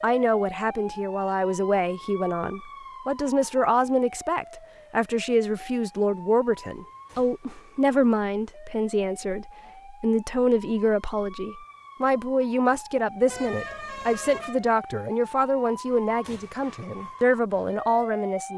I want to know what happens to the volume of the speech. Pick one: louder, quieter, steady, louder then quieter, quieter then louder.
steady.